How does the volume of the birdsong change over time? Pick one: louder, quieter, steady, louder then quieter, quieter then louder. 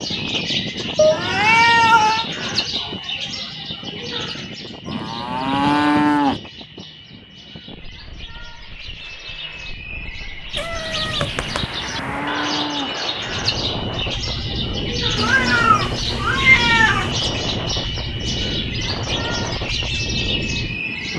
quieter then louder.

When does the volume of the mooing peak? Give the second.
6 s.